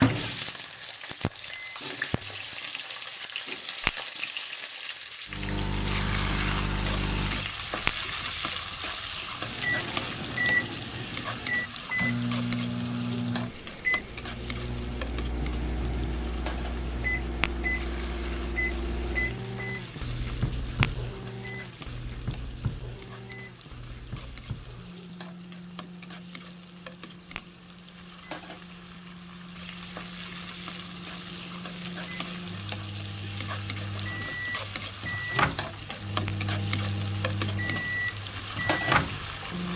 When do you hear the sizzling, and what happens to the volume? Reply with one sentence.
The sizzling can be heard from 0.0 to 39.7 s, getting quieter then louder.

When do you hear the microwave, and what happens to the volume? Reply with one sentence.
You can hear the microwave briefly from 0.0 to 1.9 s; briefly from 5.3 to 7.5 s; and from 9.3 to 39.7 s, getting quieter then louder.